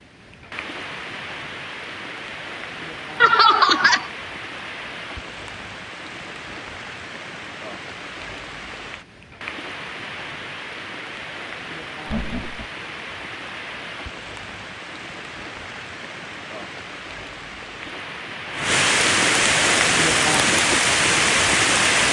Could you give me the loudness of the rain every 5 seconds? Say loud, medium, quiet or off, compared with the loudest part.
quiet, quiet, quiet, medium, loud.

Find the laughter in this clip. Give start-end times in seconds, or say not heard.
3.2-4.0, 12.1-12.7.